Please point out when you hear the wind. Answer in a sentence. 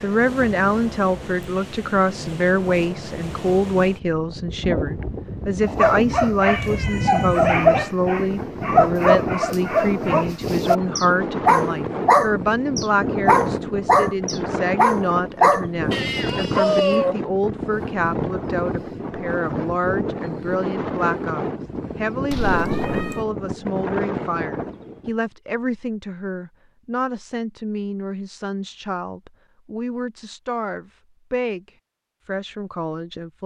The wind can be heard from 0.0 to 25.1 s.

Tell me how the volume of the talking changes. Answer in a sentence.
The loudness of the talking goes down.